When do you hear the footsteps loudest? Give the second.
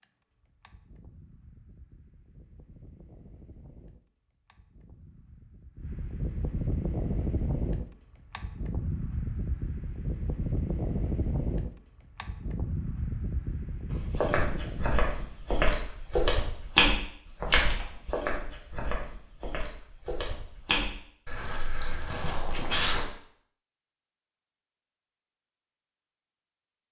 17 s.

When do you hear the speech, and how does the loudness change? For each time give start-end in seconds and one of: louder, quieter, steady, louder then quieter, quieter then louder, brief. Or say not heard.
not heard.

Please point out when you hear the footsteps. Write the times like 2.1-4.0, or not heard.
13.9-23.1.